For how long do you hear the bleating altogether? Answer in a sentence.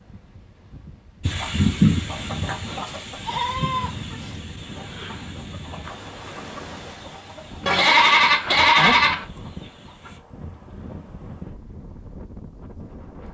The bleating can be heard for 3 seconds in total.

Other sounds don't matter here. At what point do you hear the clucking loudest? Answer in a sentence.
The loudest moment of the clucking is at 2 seconds.